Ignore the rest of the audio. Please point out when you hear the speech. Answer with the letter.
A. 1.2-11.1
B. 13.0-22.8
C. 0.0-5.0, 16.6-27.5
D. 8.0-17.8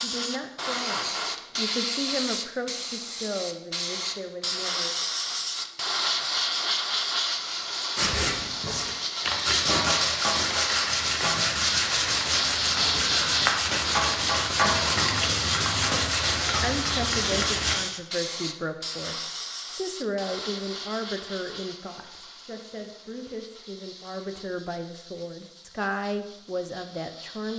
C.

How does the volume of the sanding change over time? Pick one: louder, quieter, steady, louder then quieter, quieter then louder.
steady.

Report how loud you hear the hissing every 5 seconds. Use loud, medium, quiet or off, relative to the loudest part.
loud, loud, loud, loud, quiet, quiet.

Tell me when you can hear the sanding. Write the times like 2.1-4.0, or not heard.
8.0-17.8.